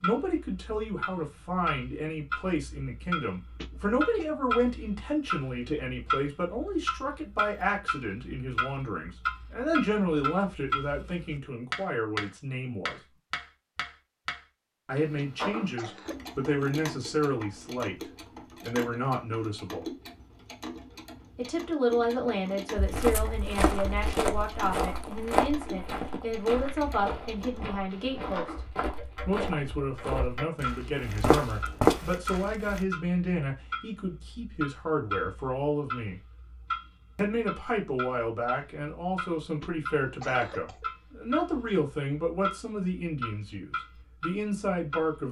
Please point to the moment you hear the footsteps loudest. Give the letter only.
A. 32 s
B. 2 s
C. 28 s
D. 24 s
A.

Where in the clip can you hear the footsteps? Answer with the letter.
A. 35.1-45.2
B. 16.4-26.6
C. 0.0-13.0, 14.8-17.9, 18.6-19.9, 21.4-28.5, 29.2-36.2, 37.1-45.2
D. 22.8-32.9
D.